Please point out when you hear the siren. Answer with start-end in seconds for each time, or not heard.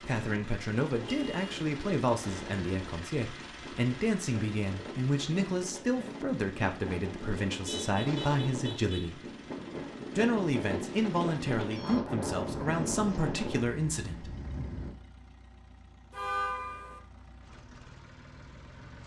not heard.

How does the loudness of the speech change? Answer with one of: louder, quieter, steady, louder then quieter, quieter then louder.
steady.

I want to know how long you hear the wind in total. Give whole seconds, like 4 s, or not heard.
15 s.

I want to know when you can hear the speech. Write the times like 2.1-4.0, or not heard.
0.0-9.2, 10.2-14.3.